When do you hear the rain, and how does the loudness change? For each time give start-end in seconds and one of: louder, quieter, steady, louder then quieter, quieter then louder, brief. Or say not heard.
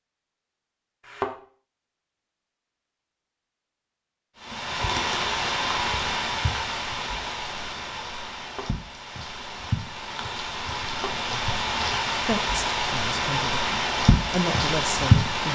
4.4-15.5 quieter then louder.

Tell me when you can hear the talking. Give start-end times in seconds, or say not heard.
12.2-15.5.